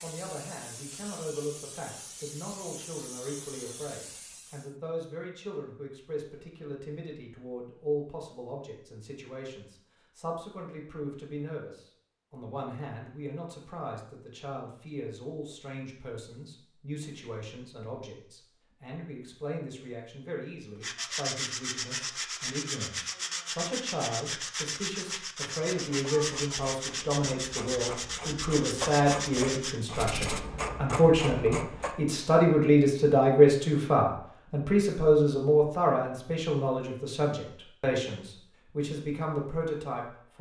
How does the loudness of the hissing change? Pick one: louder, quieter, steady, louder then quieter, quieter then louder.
steady.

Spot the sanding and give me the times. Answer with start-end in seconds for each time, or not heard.
20.8-30.4.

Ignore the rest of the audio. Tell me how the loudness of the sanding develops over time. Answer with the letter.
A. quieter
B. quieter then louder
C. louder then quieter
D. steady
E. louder
D.